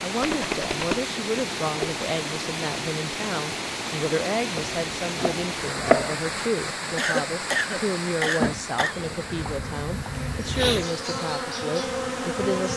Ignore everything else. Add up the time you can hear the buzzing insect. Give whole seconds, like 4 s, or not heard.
4 s.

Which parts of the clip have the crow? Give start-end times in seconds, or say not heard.
not heard.